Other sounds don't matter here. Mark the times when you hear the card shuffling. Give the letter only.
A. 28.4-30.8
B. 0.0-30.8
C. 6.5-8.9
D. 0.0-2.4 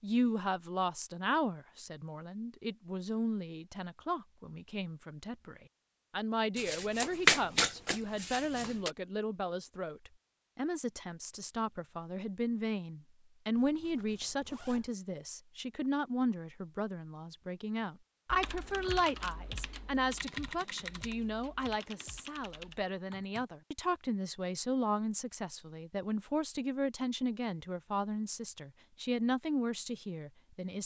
C.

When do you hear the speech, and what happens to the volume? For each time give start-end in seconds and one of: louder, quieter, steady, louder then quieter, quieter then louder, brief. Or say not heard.
0.0-30.8 steady.